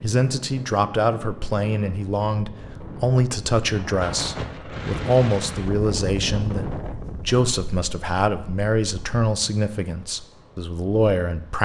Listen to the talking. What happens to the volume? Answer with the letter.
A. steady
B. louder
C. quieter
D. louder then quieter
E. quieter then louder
A.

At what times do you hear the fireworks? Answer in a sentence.
You can't hear the fireworks here.